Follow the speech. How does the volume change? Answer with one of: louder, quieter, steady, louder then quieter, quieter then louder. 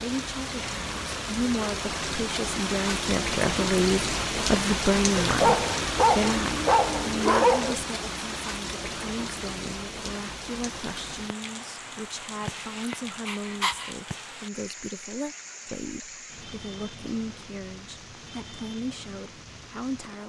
quieter.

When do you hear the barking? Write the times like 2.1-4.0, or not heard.
5.2-7.8, 12.4-13.9.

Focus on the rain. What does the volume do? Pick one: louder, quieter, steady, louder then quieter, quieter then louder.
quieter.